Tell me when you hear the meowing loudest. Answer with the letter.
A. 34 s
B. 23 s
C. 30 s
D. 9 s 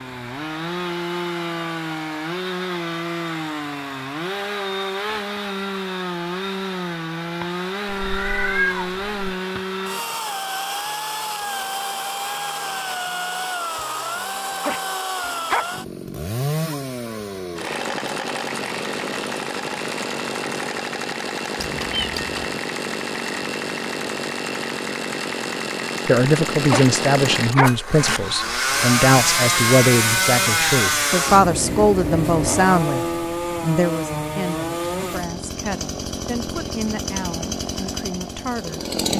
D.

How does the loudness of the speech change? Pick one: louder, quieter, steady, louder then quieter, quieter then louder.
quieter.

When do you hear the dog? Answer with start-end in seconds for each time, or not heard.
14.6-15.7, 26.7-27.8.